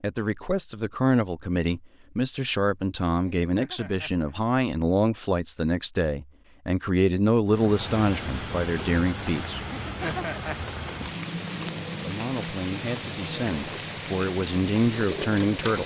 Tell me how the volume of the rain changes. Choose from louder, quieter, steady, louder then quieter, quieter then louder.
steady.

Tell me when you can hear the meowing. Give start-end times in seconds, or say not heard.
3.1-4.3, 9.6-10.6.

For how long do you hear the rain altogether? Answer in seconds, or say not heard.
8 s.